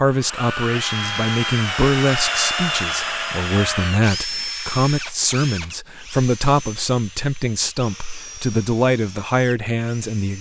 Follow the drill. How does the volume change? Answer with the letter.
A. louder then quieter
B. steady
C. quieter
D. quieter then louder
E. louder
C.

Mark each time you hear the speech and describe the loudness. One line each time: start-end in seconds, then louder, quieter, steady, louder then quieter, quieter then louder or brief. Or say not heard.
0.0-10.3 steady.